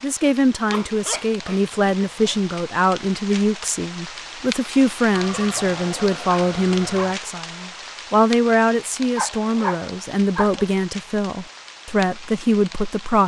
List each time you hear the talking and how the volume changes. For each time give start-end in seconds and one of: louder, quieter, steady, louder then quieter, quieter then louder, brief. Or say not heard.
0.0-13.2 steady.